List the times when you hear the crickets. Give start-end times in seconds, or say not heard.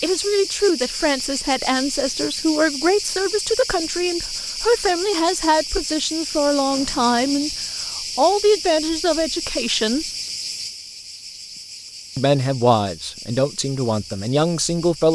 0.0-15.1.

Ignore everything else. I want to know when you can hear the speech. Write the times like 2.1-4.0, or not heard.
0.0-7.5, 8.2-10.1, 12.2-15.1.